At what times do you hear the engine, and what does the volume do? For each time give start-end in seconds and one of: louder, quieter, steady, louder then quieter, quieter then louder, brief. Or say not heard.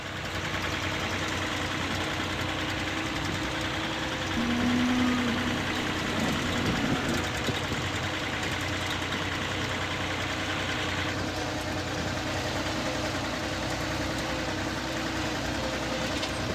0.0-16.5 steady.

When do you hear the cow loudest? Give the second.
5 s.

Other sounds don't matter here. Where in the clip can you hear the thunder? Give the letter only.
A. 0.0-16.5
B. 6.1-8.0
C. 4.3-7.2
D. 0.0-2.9
B.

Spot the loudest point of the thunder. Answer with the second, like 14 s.
7 s.